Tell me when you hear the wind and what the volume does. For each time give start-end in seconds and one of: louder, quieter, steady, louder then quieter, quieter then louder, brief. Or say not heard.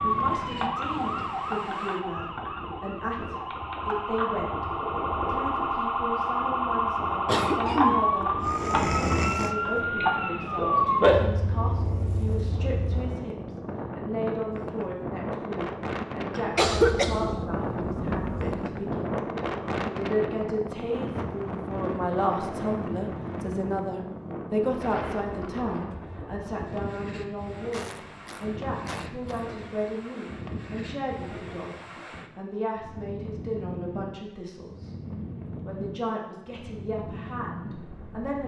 0.0-38.4 louder then quieter.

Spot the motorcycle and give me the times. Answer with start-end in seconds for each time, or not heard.
not heard.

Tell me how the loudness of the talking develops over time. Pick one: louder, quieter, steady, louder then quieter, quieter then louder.
steady.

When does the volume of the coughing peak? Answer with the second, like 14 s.
17 s.